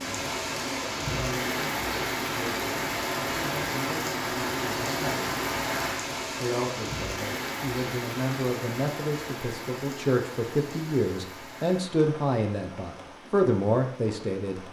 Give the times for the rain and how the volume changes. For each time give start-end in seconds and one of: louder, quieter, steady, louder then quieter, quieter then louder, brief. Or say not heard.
0.0-14.6 quieter.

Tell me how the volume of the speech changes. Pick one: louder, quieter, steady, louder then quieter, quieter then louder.
louder.